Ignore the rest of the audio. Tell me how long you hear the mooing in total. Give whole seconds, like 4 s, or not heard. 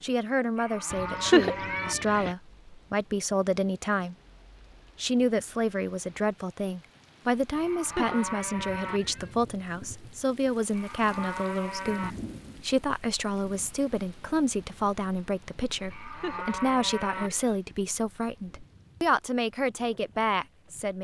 6 s.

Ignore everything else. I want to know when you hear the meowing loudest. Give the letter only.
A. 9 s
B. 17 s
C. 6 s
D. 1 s
D.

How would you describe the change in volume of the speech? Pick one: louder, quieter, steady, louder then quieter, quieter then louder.
steady.